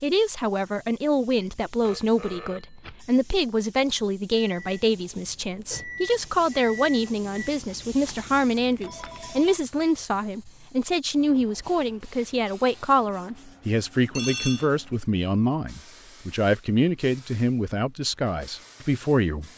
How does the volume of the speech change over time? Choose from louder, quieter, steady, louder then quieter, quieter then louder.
steady.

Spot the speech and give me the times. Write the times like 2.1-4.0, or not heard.
0.0-19.5.